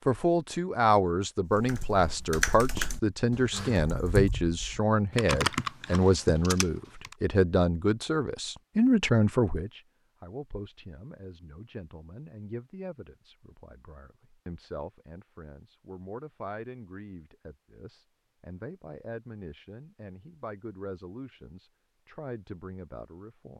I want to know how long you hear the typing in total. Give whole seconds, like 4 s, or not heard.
6 s.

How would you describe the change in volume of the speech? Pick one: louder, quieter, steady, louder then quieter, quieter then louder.
quieter.